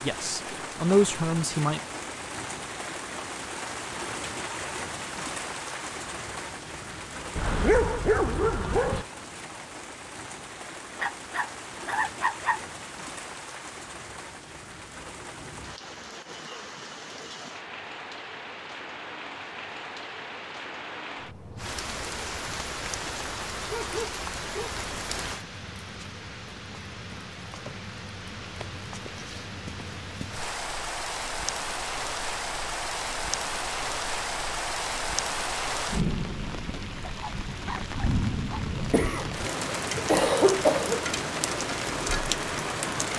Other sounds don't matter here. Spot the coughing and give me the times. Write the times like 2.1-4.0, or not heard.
38.7-41.0.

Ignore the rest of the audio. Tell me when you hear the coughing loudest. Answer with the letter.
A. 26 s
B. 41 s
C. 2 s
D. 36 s
B.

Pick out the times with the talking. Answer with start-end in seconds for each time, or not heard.
0.0-1.8.